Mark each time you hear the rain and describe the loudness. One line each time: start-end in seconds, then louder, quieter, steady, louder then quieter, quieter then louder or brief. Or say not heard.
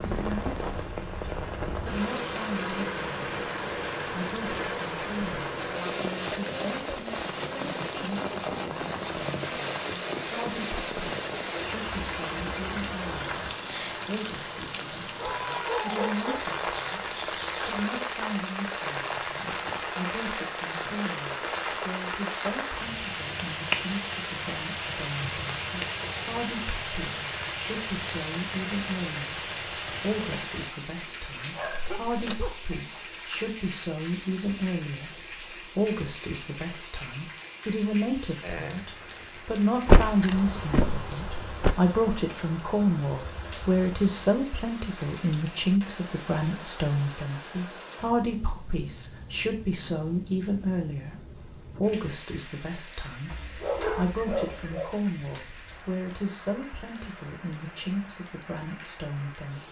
0.0-59.6 quieter.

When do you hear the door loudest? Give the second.
40 s.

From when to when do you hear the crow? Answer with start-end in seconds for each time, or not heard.
not heard.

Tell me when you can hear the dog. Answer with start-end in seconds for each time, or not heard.
15.2-17.9, 31.5-32.5, 53.3-54.9.